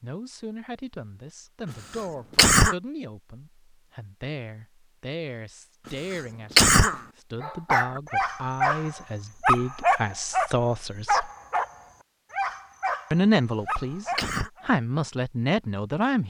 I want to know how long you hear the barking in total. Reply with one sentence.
You can hear the barking for 8 seconds altogether.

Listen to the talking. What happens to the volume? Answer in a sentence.
The loudness of the talking goes up.